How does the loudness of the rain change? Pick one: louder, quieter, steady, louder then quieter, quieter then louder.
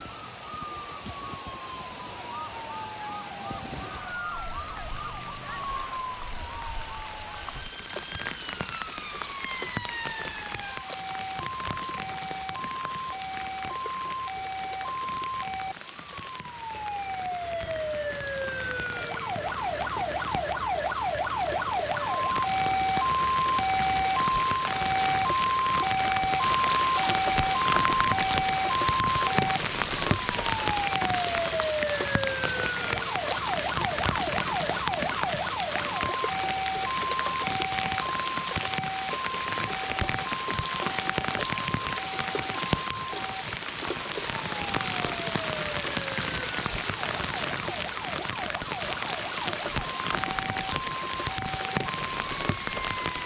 louder.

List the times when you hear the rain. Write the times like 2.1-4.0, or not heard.
0.0-53.2.